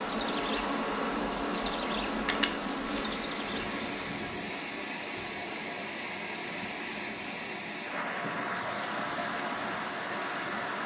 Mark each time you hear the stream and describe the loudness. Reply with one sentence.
The stream can be heard from 0.0 to 10.8 s, at a steady volume.